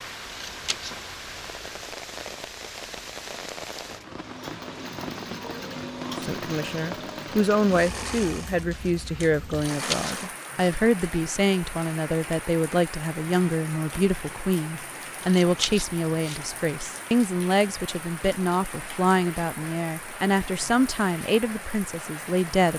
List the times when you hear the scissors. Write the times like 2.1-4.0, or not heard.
0.2-0.9, 9.5-10.2, 15.2-16.4.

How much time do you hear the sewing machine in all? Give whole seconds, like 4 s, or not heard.
6 s.